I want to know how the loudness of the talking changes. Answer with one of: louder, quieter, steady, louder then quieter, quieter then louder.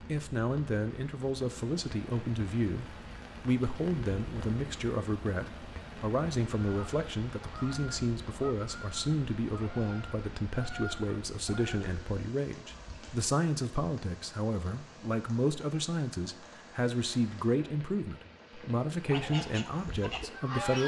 steady.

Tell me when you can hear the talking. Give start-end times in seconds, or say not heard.
0.1-20.8.